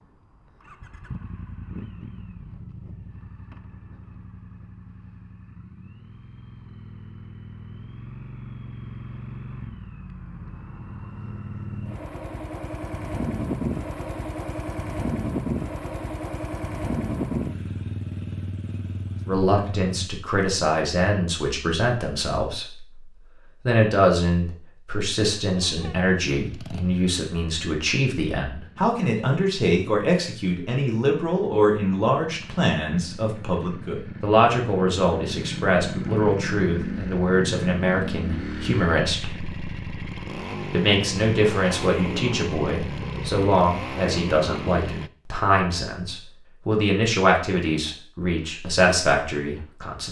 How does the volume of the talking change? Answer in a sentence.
The volume of the talking stays about the same.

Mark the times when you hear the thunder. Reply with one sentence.
You can't hear the thunder here.